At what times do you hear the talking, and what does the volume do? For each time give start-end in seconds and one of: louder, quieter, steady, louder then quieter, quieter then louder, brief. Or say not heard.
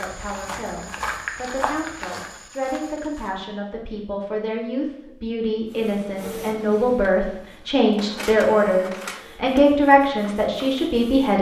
0.0-11.3 louder.